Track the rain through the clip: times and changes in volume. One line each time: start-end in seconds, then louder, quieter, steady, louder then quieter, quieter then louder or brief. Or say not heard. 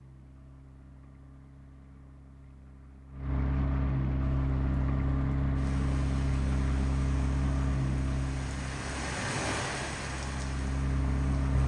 4.2-11.6 louder then quieter.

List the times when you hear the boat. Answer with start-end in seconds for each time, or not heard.
0.0-11.6.